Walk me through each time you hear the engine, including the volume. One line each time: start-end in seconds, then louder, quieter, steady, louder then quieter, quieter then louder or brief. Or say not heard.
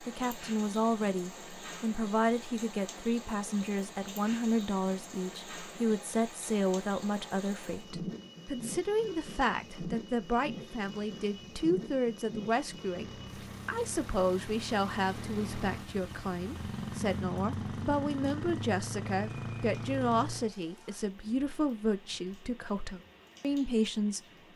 12.8-20.5 louder.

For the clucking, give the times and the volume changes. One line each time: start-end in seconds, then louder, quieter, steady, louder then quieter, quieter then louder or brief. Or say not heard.
not heard.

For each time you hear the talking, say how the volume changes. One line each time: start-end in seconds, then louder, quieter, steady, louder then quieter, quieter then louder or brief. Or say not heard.
0.0-24.5 steady.